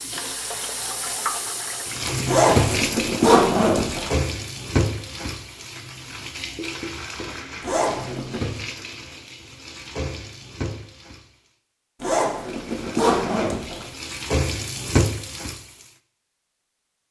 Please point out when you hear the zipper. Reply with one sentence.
You can hear the zipper from 2.2 to 4.1 s, from 7.6 to 8.5 s and from 12.0 to 13.8 s.